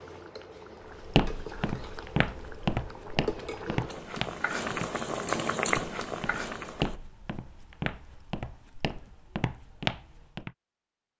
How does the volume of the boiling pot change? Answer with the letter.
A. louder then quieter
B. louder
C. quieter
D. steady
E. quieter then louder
B.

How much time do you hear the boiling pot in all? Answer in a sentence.
The boiling pot can be heard for 7 seconds in total.